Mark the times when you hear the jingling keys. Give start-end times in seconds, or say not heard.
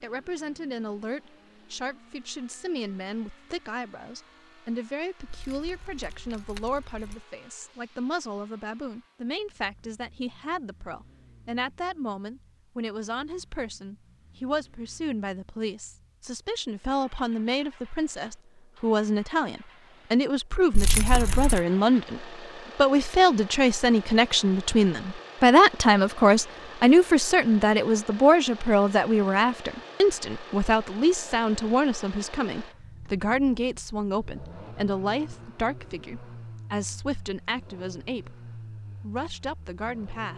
5.2-7.2, 20.7-21.6.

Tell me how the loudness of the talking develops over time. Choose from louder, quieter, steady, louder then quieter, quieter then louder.
louder then quieter.